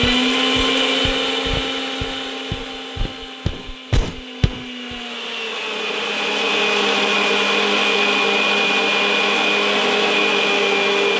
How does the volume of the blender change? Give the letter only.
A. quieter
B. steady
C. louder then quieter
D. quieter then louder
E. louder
D.